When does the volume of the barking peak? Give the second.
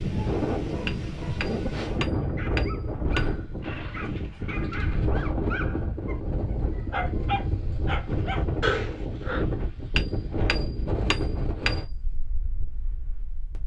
9 s.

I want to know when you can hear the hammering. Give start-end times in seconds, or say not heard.
0.8-3.3, 9.9-11.8.